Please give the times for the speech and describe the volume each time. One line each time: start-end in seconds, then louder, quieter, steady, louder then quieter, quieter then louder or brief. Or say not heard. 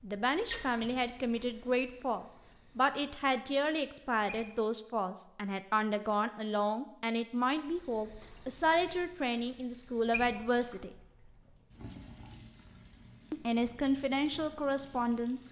0.0-10.9 steady
13.3-15.4 brief.